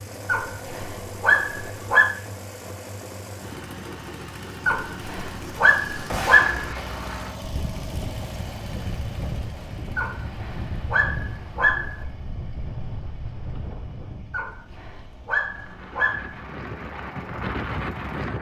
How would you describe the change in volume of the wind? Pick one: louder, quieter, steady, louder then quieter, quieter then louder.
quieter then louder.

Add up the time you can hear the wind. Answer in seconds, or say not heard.
11 s.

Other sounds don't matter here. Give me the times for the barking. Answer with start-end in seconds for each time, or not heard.
0.2-2.1, 4.7-6.7, 9.9-12.1, 14.3-16.4.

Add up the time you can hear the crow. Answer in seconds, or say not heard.
not heard.